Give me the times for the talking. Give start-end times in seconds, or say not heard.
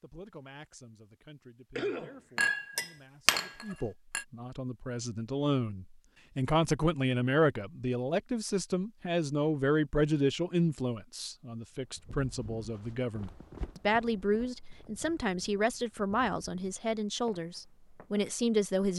0.0-18.9.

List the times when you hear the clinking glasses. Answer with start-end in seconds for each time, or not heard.
2.4-4.2.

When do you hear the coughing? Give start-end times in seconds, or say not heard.
1.8-2.5.